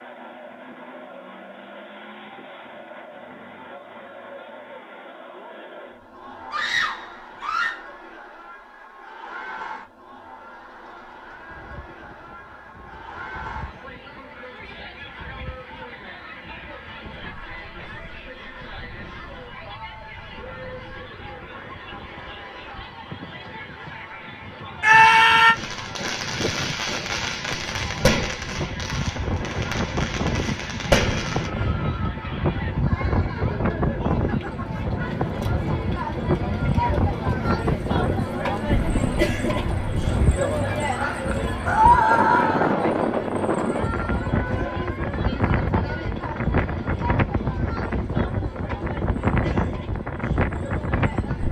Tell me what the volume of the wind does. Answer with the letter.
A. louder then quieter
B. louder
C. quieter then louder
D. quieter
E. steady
B.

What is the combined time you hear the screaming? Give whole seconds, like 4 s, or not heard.
3 s.